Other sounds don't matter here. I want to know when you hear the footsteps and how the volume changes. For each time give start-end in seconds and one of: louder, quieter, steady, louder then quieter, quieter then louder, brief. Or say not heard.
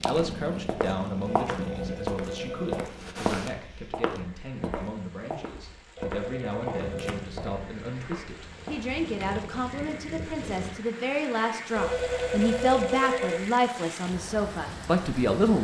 0.0-8.8 quieter.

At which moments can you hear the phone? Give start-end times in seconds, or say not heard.
1.2-2.9, 6.0-7.2, 11.8-13.5.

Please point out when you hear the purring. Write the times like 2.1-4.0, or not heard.
0.0-3.5, 6.8-10.8.